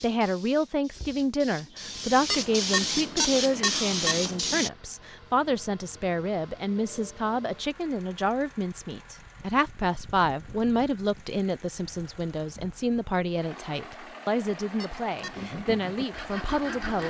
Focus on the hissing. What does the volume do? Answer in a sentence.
The volume of the hissing goes up.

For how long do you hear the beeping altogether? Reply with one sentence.
The beeping can be heard for 3 seconds in total.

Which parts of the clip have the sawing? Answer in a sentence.
The sawing can be heard from 15.2 to 17.0 s.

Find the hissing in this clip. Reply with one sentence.
You can hear the hissing from 0.0 to 4.7 s.